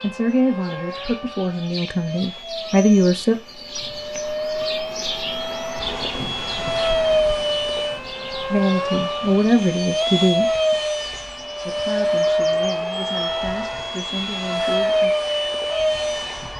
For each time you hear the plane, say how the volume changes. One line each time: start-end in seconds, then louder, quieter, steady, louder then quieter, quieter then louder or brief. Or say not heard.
0.0-16.5 louder.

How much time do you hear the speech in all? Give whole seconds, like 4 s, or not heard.
9 s.